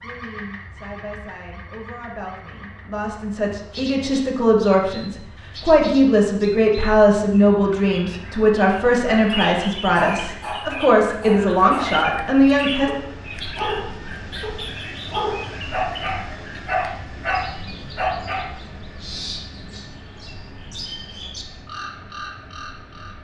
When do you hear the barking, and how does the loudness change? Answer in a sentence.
You can hear the barking briefly from 9.9 to 11.9 s; and from 12.8 to 18.4 s, getting quieter then louder.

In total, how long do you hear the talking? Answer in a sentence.
You can hear the talking for 13 seconds altogether.